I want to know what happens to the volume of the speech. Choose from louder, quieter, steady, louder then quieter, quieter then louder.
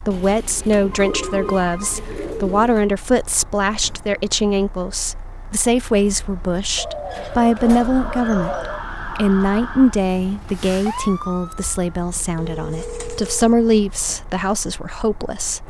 steady.